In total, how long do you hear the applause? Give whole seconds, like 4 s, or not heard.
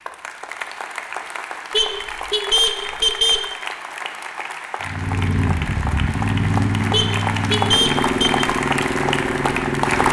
10 s.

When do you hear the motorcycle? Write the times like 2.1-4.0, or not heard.
4.8-10.0.